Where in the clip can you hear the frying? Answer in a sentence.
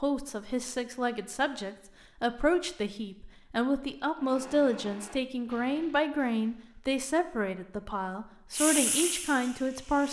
You can hear the frying from 8.5 to 10.0 s.